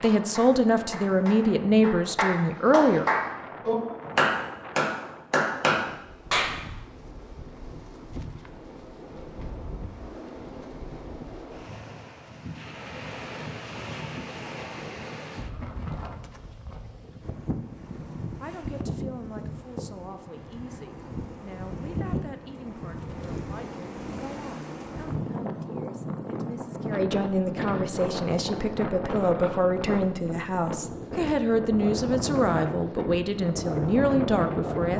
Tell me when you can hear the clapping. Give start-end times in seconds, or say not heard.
0.0-6.5.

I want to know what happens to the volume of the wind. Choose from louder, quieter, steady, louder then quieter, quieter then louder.
louder.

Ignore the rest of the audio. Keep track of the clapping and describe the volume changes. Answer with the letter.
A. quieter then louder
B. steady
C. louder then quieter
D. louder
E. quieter
D.